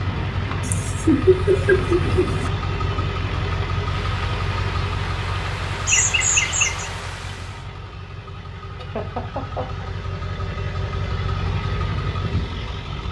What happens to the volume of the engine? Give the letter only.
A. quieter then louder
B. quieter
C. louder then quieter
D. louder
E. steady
A.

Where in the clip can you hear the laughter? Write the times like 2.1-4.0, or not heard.
0.6-2.5, 5.8-6.9, 8.8-9.8.